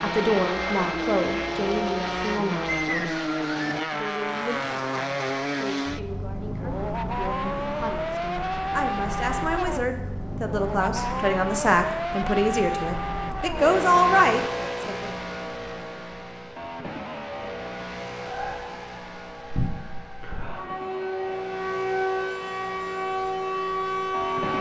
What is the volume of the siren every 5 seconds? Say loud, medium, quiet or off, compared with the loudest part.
medium, off, off, medium, loud.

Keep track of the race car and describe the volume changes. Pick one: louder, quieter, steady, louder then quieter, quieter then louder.
quieter.